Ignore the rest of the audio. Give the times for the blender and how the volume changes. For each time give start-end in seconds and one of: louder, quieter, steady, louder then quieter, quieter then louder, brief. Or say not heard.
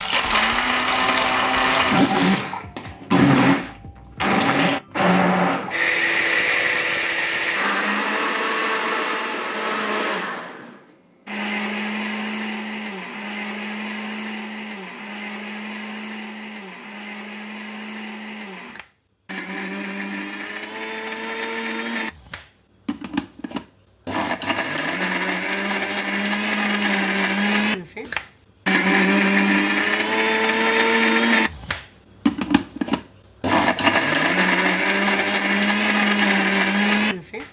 0.0-37.4 quieter then louder.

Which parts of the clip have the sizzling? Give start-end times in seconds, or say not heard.
0.0-2.5.